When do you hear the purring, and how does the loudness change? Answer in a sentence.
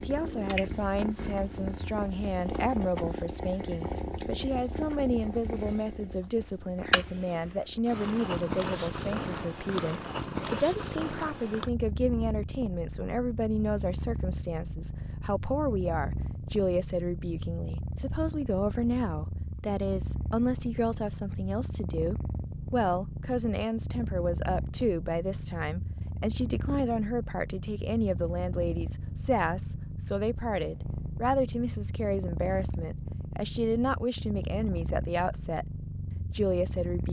You can hear the purring from 0.0 to 37.0 s, at a steady volume.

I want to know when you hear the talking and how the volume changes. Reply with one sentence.
The talking can be heard from 0.0 to 35.6 s, at a steady volume; and briefly from 36.3 to 37.0 s.